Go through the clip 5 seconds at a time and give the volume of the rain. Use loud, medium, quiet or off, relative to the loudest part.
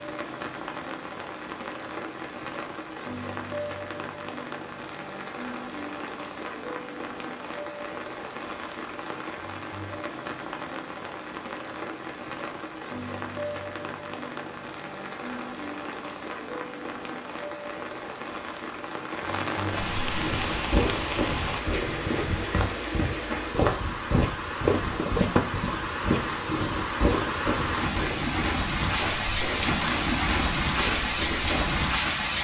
medium, medium, medium, medium, medium, loud, loud.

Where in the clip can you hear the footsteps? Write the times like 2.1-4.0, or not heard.
20.2-31.9.